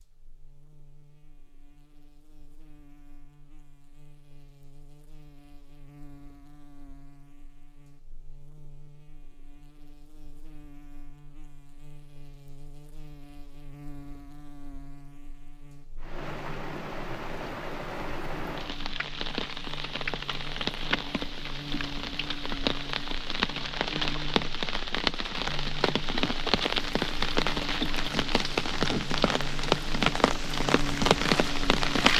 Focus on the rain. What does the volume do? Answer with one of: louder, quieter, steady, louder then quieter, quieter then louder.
louder.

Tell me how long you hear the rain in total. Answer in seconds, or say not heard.
16 s.